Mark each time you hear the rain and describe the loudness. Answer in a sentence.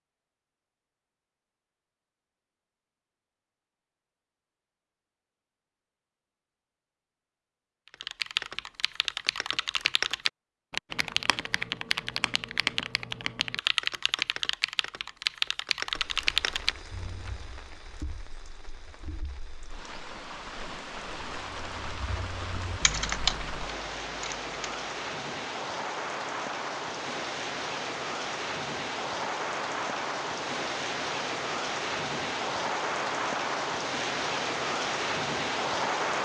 The rain can be heard from 15.8 to 36.2 s, getting louder.